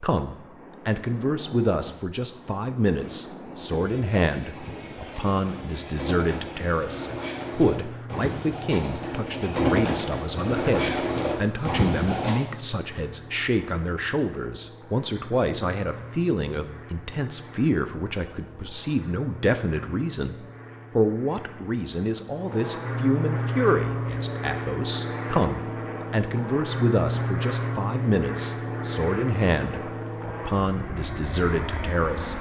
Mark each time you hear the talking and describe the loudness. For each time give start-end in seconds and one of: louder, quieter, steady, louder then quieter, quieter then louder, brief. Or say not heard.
0.0-32.3 steady.